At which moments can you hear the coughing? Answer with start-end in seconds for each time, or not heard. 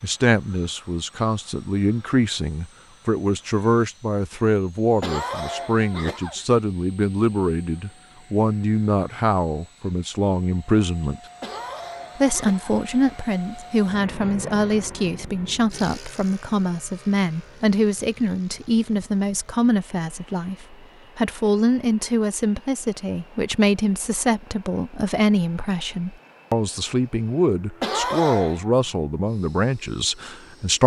5.0-6.5, 11.4-12.8, 27.8-28.6.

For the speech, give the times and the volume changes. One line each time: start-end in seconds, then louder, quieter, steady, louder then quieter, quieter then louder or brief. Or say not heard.
0.0-11.2 steady
12.2-30.8 steady.